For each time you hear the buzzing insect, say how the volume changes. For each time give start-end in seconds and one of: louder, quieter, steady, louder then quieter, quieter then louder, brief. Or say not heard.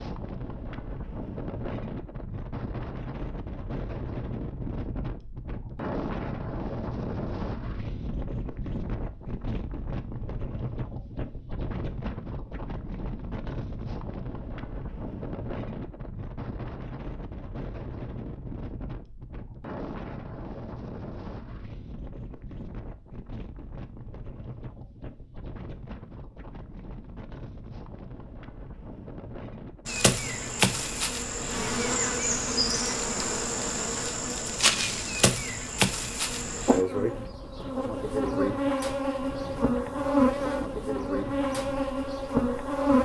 29.9-43.0 steady.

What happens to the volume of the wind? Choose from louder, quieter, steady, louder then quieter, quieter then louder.
quieter.